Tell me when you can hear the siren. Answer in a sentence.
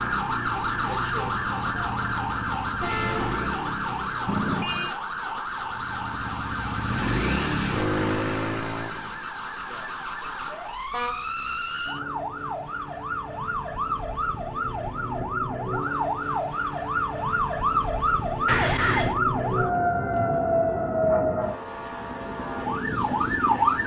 The siren can be heard from 0.0 to 23.8 s.